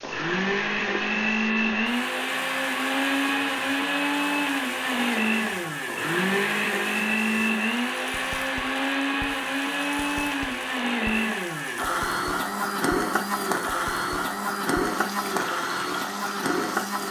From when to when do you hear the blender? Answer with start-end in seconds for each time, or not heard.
0.0-17.0.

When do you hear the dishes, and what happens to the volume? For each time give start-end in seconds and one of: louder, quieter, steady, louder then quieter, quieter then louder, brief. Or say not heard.
not heard.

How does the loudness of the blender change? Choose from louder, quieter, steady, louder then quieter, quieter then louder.
steady.